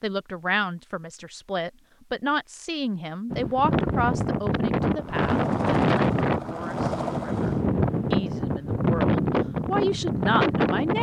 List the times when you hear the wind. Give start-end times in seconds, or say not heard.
3.3-10.9.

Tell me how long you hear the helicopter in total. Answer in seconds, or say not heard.
3 s.